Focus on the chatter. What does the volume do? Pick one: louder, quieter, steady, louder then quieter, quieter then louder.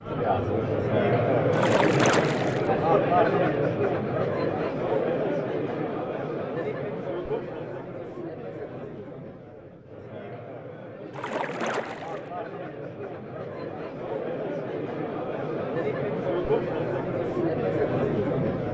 quieter then louder.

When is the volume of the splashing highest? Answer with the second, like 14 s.
2 s.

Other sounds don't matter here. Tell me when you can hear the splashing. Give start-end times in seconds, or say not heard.
1.5-2.7, 11.1-12.3.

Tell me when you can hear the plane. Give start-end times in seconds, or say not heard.
not heard.